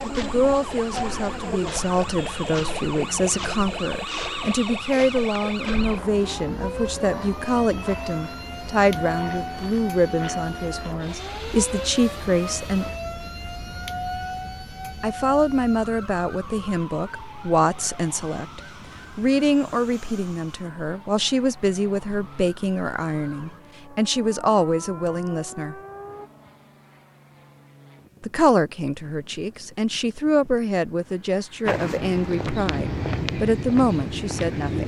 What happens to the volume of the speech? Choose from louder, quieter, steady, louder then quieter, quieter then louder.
steady.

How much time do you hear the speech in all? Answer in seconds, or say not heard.
30 s.